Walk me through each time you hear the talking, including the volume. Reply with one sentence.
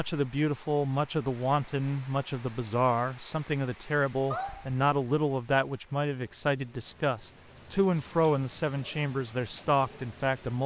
You can hear the talking from 0.0 to 10.6 s, at a steady volume.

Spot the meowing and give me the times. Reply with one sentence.
The meowing can be heard from 4.3 to 4.8 s.